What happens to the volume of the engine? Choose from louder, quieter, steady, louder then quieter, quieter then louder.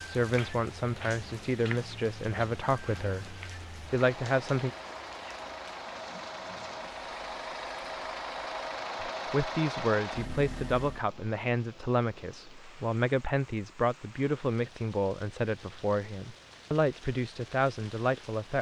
louder.